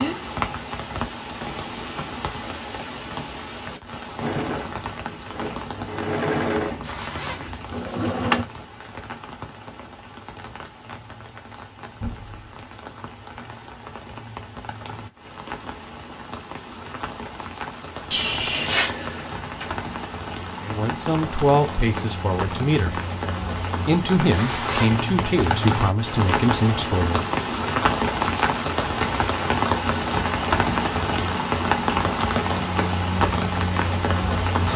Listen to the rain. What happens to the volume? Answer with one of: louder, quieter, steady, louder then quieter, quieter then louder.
quieter then louder.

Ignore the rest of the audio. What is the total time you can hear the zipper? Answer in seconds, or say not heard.
4 s.